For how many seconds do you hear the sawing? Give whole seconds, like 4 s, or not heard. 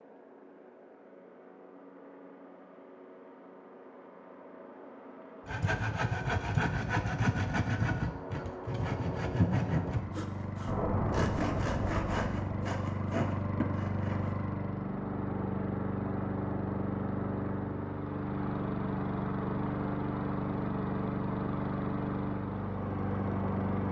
9 s.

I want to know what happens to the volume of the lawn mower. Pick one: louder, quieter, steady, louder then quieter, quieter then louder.
louder.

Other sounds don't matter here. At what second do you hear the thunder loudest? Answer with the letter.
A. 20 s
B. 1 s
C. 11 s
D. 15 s
C.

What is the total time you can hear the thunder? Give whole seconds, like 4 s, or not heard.
2 s.